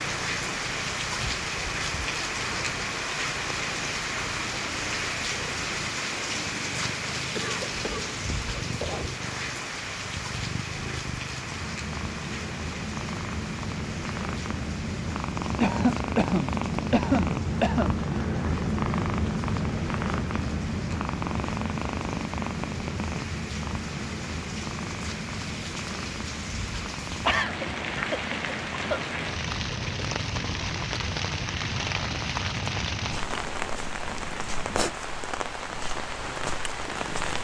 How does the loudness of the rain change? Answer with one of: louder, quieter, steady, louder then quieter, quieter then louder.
quieter then louder.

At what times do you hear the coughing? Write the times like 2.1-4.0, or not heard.
7.3-9.1, 15.6-17.9, 27.2-29.0.